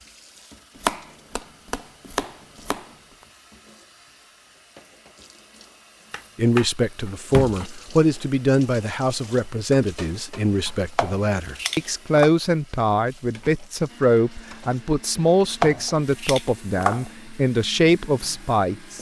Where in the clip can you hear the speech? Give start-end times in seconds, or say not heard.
6.3-18.9.